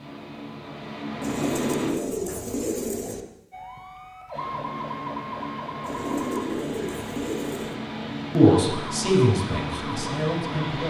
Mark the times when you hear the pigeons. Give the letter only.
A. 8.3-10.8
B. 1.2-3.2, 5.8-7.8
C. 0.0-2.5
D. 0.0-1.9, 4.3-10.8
B.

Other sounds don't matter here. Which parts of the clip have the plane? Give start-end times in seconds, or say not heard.
0.0-1.9, 4.3-10.8.